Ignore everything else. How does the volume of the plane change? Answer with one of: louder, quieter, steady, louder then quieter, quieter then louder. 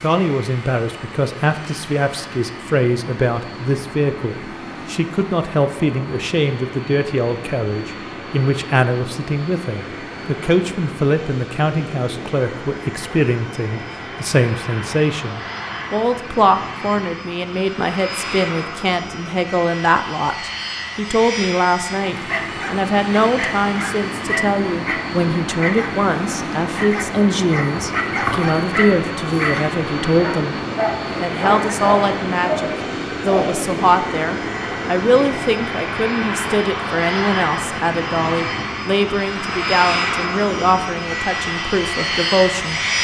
louder.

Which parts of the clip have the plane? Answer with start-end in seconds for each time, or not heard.
0.0-42.9.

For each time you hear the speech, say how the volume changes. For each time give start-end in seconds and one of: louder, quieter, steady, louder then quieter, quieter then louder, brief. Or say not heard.
0.0-30.6 steady
31.1-42.8 steady.